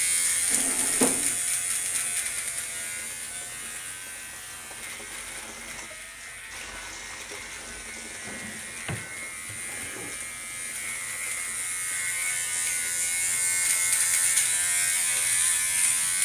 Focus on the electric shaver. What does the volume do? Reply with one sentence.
The loudness of the electric shaver goes down, then up.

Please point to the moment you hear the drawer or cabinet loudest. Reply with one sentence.
The loudest moment of the drawer or cabinet is at 1 second.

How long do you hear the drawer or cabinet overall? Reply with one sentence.
You can hear the drawer or cabinet for 3 seconds altogether.